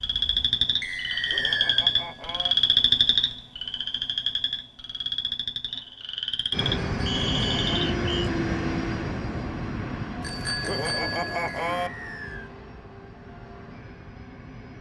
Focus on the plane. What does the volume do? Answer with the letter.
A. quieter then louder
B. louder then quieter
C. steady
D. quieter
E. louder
D.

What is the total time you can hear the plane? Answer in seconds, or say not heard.
8 s.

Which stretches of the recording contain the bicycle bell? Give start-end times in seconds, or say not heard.
0.9-2.5, 7.0-7.8, 10.2-11.9.